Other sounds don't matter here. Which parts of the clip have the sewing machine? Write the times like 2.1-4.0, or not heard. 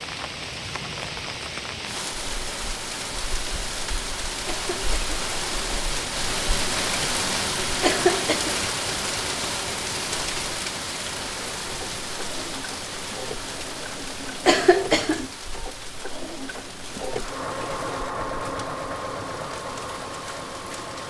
11.7-21.0.